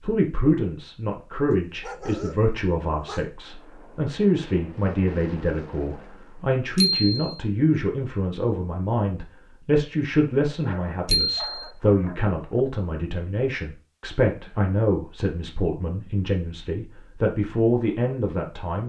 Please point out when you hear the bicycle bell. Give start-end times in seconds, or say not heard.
6.8-7.4, 11.1-11.7.